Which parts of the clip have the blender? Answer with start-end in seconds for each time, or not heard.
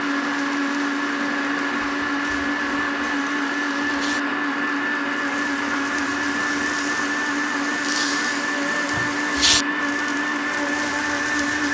0.0-11.6.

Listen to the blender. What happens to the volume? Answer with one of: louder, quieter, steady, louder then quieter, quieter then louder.
steady.